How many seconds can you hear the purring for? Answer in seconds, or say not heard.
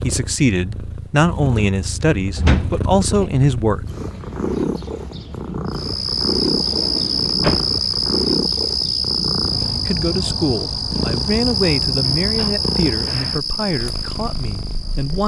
15 s.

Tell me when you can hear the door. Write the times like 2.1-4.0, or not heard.
2.4-3.2, 6.5-7.7, 11.6-12.6.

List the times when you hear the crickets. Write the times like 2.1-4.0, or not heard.
5.7-15.2.